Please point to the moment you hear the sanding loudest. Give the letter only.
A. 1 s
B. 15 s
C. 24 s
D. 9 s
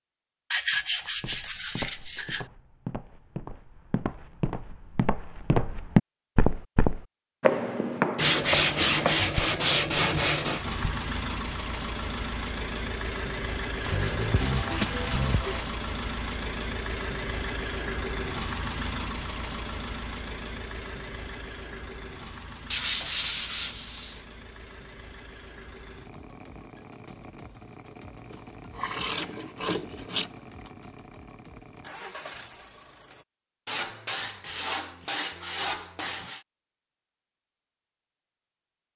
D.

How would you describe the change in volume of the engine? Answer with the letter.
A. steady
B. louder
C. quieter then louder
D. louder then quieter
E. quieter
E.